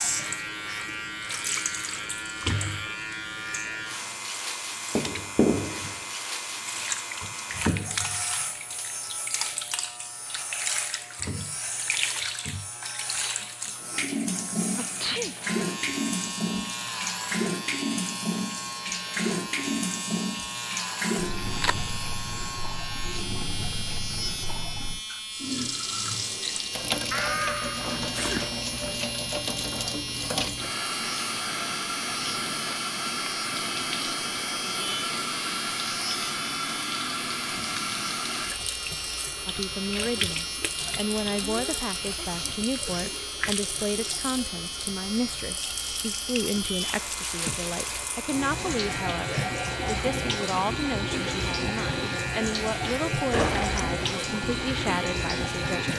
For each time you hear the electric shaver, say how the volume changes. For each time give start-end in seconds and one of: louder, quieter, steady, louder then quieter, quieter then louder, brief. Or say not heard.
0.0-55.9 steady.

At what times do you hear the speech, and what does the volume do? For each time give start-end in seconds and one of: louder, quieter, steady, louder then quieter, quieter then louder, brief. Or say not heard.
39.5-55.9 steady.